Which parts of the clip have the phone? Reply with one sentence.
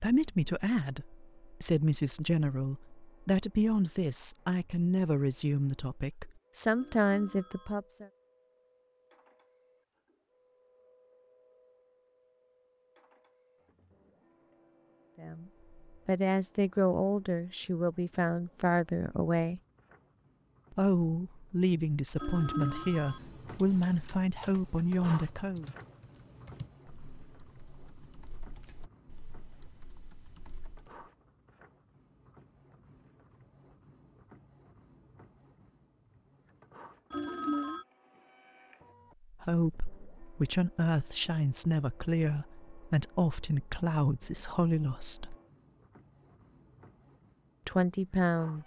The phone can be heard from 6.8 to 7.8 s, from 22.1 to 23.2 s and from 37.1 to 37.9 s.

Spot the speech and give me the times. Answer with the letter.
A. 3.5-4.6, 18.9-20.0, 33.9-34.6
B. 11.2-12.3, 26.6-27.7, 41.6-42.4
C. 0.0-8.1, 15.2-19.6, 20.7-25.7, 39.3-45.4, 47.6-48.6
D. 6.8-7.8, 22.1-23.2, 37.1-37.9
C.